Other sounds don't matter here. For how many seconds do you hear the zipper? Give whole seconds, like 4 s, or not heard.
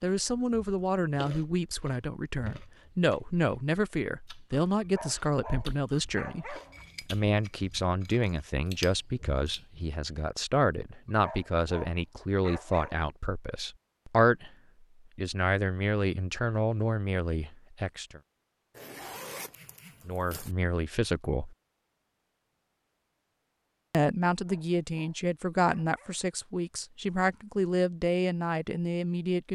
2 s.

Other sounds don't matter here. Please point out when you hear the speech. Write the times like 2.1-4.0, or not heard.
0.0-14.5, 15.2-18.2, 20.1-21.6, 23.9-29.4.